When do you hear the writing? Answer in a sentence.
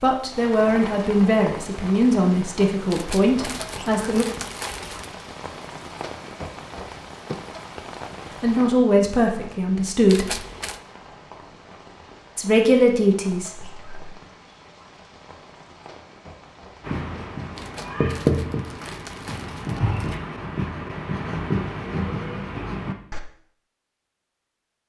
The writing can be heard from 16.8 to 23.2 s.